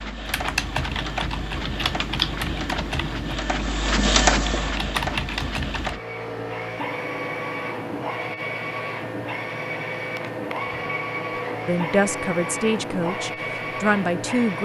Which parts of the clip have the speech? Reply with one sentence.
You can hear the speech from 11.7 to 14.5 s.